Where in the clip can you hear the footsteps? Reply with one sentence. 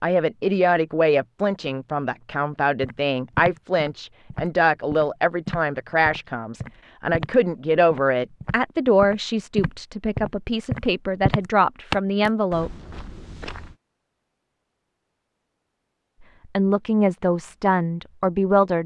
You can hear the footsteps from 2.8 to 13.8 s.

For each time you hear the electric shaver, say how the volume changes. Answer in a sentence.
You can't hear the electric shaver here.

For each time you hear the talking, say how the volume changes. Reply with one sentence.
You can hear the talking from 0.0 to 12.7 s, at a steady volume; and briefly from 16.6 to 18.8 s.